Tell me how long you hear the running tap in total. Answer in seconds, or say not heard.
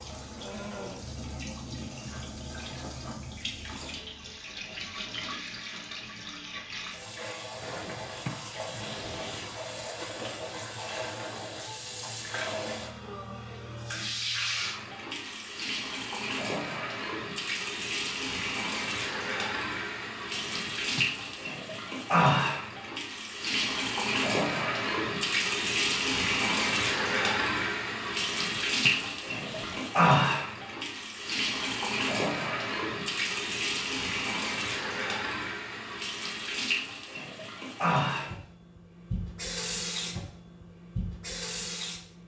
42 s.